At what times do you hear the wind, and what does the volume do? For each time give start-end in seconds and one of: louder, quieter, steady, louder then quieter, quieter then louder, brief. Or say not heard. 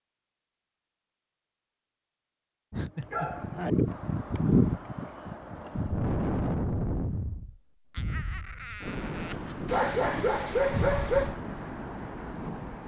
3.0-12.8 quieter.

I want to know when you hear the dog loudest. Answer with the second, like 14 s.
11 s.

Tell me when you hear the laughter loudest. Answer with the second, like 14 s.
3 s.